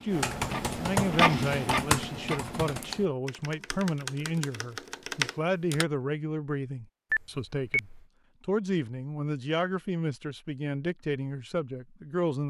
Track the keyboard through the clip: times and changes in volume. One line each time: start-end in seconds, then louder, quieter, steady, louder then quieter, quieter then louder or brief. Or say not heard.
0.1-5.8 quieter then louder.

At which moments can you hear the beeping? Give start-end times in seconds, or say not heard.
7.1-8.0.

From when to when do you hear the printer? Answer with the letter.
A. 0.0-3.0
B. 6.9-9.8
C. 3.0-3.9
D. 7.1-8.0
A.